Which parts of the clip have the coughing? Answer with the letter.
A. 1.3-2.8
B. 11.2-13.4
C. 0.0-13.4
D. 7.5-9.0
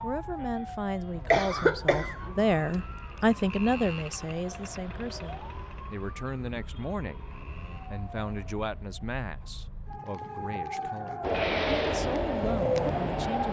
A.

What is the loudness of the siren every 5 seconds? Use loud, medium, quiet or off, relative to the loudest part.
medium, quiet, loud.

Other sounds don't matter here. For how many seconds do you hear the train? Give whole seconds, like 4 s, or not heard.
2 s.